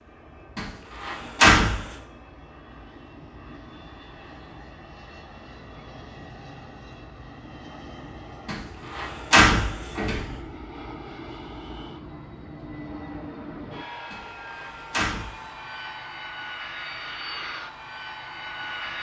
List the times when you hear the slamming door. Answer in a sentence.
The slamming door can be heard from 0.6 to 1.9 s, from 8.4 to 10.3 s and from 14.1 to 15.4 s.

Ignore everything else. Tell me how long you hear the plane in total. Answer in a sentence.
The plane can be heard for 19 seconds in total.